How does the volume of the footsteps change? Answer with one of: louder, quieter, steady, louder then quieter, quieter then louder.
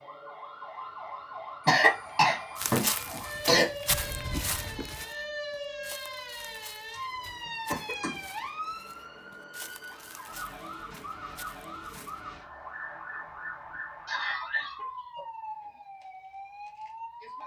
quieter.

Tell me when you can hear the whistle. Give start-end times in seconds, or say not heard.
not heard.